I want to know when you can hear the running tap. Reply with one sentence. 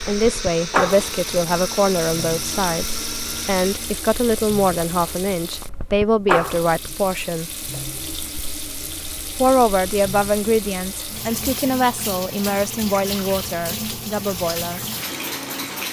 You can hear the running tap from 0.0 to 15.8 s.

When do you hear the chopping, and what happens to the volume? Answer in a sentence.
The chopping can't be heard in this clip.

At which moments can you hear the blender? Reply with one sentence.
You can hear the blender from 0.0 to 4.0 s.